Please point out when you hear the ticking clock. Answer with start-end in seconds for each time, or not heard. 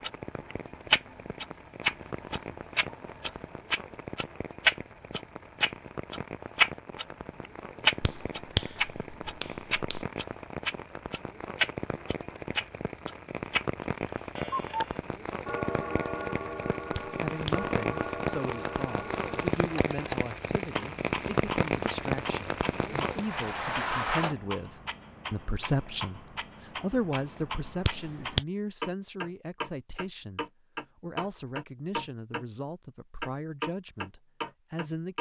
0.0-32.5, 33.2-35.1.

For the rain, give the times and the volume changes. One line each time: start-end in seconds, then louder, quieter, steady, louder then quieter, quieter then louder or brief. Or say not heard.
0.0-24.4 louder.